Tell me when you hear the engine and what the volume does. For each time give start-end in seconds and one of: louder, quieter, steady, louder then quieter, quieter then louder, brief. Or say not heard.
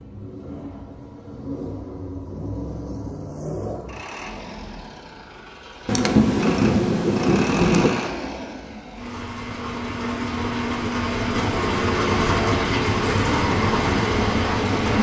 0.0-14.9 louder.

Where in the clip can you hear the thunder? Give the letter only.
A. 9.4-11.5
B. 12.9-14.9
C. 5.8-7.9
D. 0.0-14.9
C.